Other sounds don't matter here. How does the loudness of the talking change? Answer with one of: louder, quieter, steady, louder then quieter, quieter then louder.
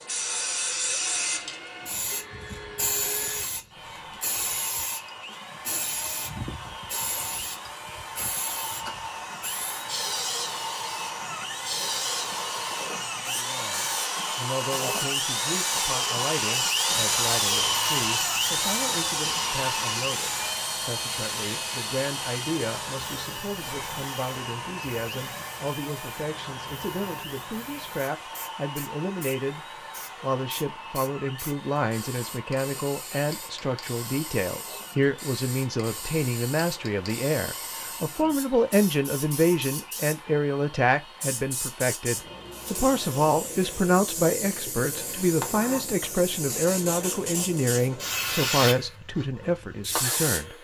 louder.